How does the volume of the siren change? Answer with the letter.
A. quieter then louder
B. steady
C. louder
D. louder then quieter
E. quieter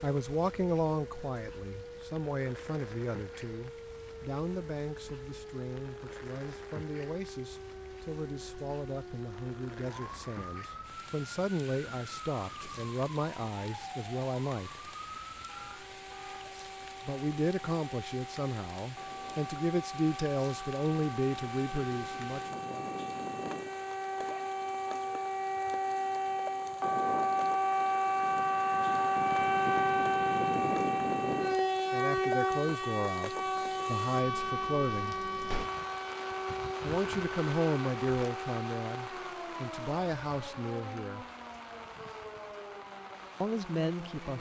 D.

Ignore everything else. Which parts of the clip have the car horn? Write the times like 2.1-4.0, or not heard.
15.4-16.5.